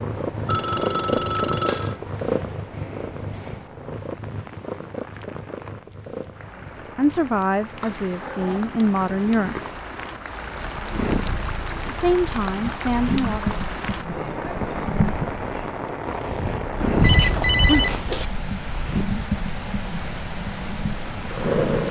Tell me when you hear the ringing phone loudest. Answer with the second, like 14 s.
18 s.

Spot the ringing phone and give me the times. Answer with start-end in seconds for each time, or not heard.
0.5-2.0, 17.0-18.2.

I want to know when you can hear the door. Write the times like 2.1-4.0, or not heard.
16.9-17.9.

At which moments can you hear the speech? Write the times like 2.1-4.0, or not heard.
7.0-9.6, 11.8-13.6.